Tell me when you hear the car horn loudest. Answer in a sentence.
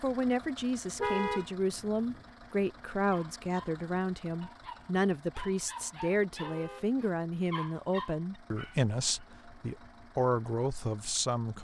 The volume of the car horn peaks at 1 second.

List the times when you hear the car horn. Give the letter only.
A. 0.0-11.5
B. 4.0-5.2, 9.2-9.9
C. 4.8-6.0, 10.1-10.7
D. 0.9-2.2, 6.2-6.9
D.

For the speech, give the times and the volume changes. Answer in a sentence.
The speech can be heard from 0.0 to 11.5 s, at a steady volume.